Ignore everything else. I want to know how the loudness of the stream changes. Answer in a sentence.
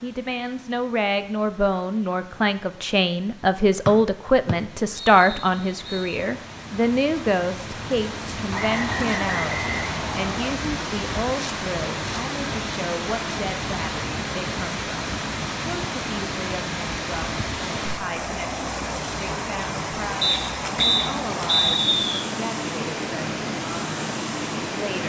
The volume of the stream goes up.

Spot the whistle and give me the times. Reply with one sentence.
The whistle can be heard from 3.9 to 6.2 s, from 8.5 to 10.6 s and from 20.2 to 22.2 s.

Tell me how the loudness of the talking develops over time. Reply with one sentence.
The loudness of the talking goes down.